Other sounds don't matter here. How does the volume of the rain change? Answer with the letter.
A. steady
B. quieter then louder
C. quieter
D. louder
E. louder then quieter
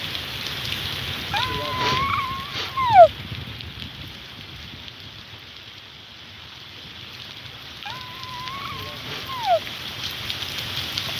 B.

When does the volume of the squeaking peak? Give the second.
3 s.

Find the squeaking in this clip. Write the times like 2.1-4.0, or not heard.
1.3-3.1, 7.8-9.6.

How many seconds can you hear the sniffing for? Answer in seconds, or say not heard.
2 s.